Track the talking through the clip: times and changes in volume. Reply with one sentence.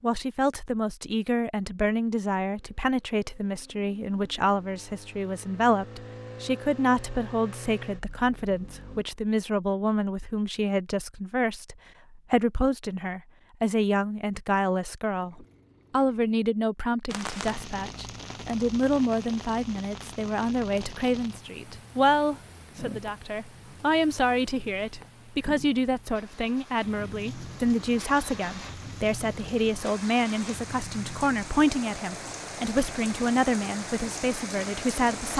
The talking can be heard from 0.0 to 35.3 s, at a steady volume.